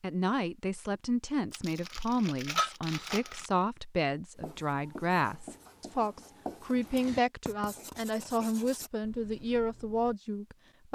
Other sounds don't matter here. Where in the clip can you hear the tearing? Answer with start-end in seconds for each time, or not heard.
1.5-3.5.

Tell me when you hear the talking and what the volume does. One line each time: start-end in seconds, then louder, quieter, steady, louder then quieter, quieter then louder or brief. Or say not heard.
0.0-10.9 steady.